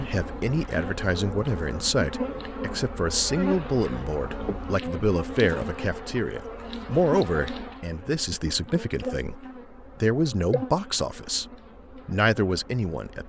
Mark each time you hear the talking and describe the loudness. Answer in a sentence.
You can hear the talking from 0.0 to 11.4 s, at a steady volume; and briefly from 12.1 to 13.2 s.